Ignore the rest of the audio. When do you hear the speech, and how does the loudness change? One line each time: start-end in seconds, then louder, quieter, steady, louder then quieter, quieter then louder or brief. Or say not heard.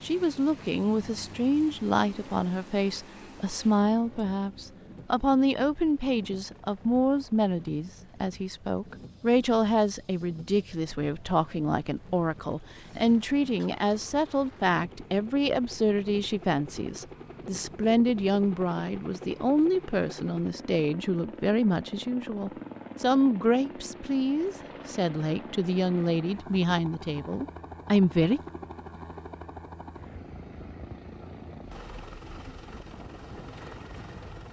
0.0-28.4 steady.